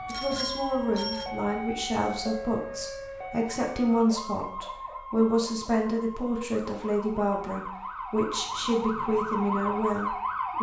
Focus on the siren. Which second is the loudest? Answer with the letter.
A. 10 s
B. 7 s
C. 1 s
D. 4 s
A.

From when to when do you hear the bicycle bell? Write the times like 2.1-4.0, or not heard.
0.1-1.3.